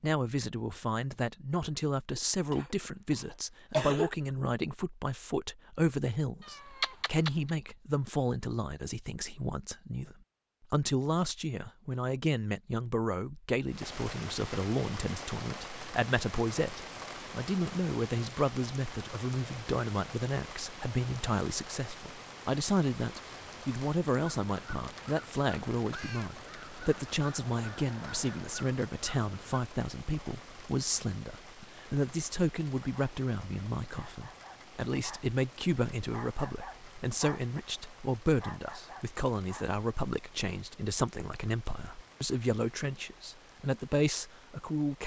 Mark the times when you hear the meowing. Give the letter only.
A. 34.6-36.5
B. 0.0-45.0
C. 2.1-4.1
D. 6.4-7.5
D.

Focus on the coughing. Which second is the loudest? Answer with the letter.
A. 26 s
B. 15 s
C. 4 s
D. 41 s
C.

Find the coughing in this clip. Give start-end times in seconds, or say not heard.
2.1-4.1.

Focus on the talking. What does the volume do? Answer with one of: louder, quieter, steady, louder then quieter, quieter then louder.
steady.